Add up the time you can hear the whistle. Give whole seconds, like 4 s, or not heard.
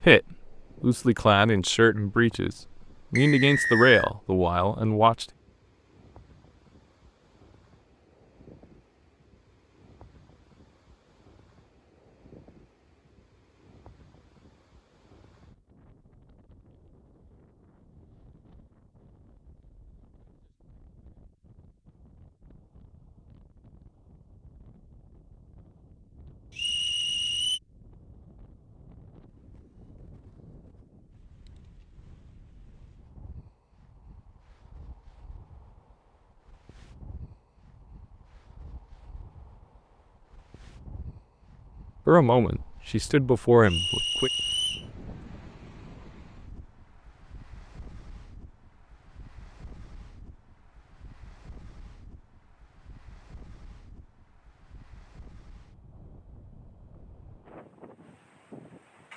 3 s.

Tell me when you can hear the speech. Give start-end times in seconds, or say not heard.
0.0-5.2, 42.0-44.3.